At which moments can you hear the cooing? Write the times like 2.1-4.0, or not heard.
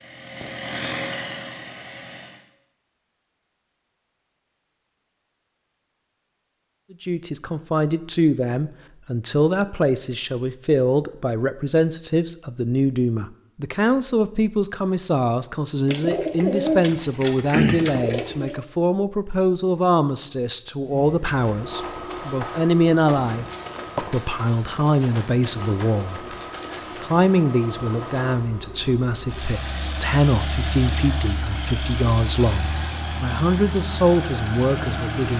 15.8-18.6.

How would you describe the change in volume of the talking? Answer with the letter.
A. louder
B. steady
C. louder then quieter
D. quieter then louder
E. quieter
B.